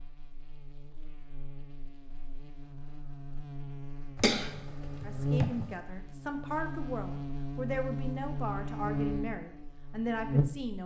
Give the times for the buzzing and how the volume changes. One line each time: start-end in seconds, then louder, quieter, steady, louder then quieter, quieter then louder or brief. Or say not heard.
0.0-10.8 louder.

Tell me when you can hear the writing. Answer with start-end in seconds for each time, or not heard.
not heard.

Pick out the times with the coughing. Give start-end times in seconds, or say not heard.
4.2-5.7.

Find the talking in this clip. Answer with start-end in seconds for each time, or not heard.
5.0-10.8.